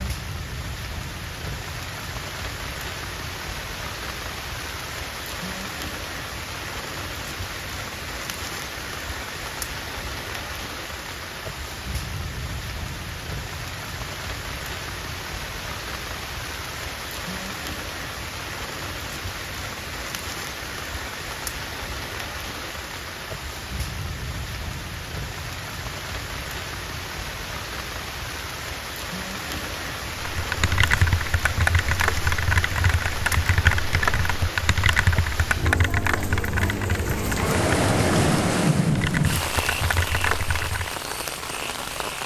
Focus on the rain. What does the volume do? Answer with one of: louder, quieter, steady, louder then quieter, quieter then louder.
louder.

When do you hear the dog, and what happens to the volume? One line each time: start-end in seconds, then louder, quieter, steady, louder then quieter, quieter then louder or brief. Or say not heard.
not heard.